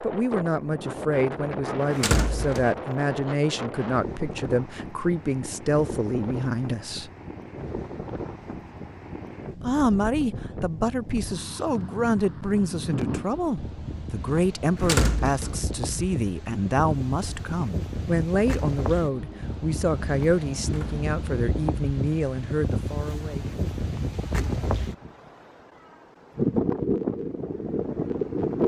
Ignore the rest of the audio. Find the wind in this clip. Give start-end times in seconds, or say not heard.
0.0-28.6.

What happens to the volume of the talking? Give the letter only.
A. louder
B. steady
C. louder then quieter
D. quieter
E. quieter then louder
B.